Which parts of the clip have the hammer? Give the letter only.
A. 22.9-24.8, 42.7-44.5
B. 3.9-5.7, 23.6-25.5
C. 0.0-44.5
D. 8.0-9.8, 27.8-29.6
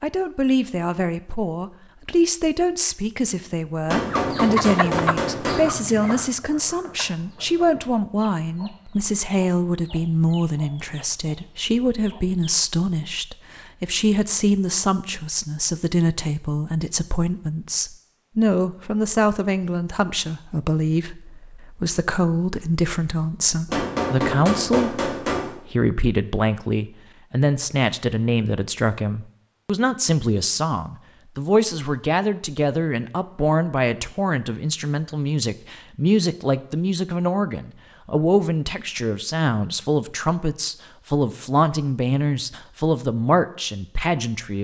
B.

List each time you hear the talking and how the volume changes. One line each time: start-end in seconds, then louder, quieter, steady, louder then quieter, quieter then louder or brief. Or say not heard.
0.0-44.5 steady.